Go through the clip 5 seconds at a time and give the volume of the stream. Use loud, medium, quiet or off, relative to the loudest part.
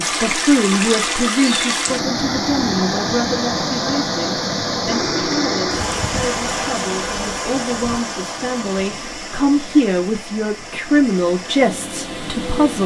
loud, loud, medium.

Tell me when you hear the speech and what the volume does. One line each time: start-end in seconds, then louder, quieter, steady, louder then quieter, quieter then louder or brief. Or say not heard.
0.0-12.8 quieter then louder.